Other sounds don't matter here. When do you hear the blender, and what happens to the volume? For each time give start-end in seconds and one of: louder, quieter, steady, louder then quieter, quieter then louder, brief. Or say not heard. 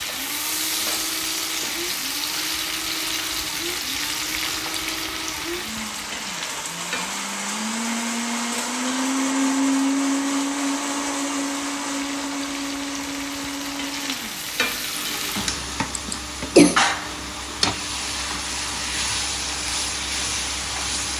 0.0-21.1 louder then quieter.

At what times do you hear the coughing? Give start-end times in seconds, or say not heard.
15.9-16.9.